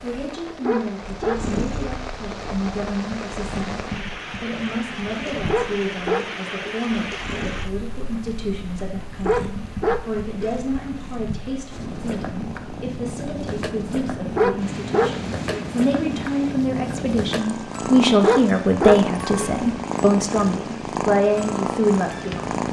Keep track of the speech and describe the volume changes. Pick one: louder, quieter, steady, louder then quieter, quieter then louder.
louder.